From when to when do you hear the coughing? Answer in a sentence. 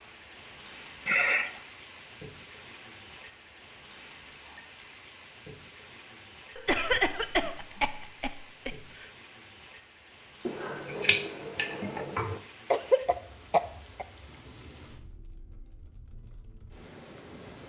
You can hear the coughing from 1.1 to 1.6 s, from 6.5 to 9.1 s and from 12.7 to 14.1 s.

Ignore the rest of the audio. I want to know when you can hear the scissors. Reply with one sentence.
You can hear the scissors from 10.4 to 12.4 s.